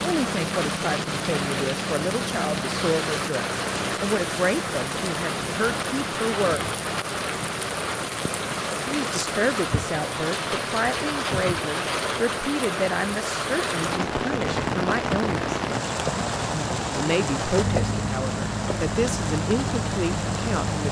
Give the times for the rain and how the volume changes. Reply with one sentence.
The rain can be heard from 0.0 to 20.8 s, at a steady volume.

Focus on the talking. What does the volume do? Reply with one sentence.
The loudness of the talking stays about the same.